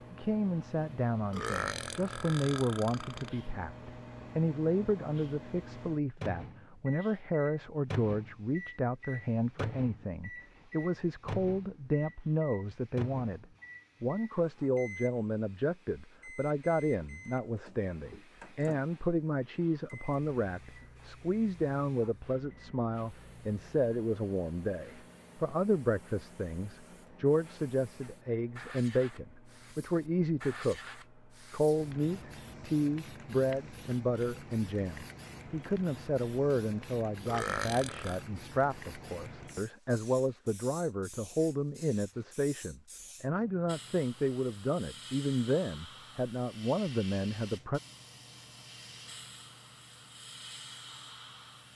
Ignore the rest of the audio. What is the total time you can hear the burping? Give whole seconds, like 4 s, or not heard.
3 s.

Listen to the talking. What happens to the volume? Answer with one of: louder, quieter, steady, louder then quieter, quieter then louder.
steady.